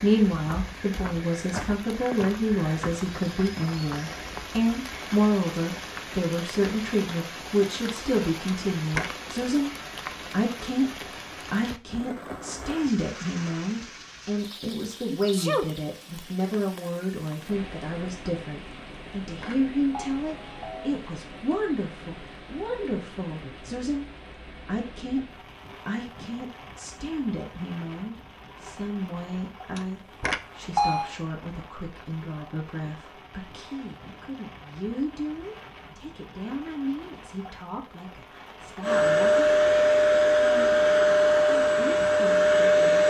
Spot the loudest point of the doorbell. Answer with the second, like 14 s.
31 s.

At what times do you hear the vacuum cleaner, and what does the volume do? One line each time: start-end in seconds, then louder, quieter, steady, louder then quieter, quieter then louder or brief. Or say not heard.
38.8-43.0 steady.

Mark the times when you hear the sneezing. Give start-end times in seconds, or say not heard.
15.1-15.7.